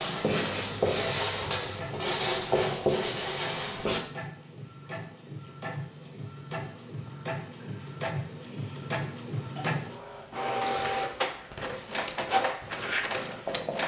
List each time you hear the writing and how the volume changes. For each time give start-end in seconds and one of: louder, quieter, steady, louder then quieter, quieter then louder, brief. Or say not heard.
0.0-4.0 steady
11.7-13.8 brief.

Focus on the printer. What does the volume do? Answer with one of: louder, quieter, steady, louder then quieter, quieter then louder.
louder.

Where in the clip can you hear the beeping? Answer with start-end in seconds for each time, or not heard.
not heard.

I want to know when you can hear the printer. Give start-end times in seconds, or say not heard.
0.0-13.8.